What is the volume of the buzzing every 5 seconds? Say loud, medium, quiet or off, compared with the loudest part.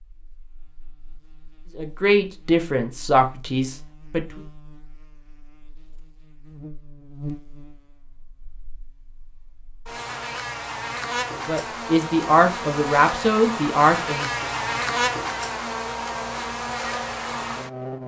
quiet, quiet, loud, loud.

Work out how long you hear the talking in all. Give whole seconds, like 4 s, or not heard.
6 s.